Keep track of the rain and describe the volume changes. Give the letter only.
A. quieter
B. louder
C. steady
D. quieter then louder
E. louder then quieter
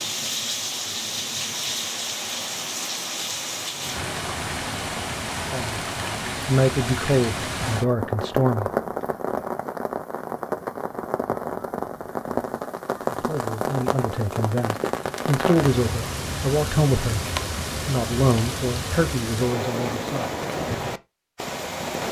C.